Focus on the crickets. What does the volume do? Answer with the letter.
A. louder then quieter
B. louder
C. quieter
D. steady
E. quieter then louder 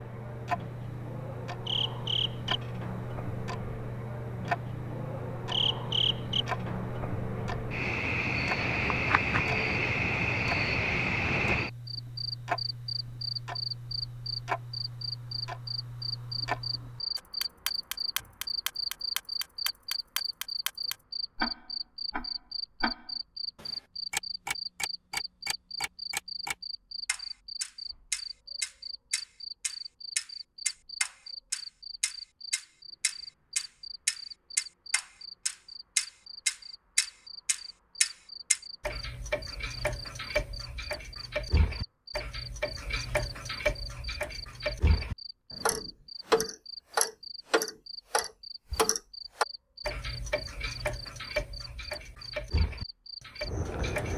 C.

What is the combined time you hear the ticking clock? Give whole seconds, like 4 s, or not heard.
54 s.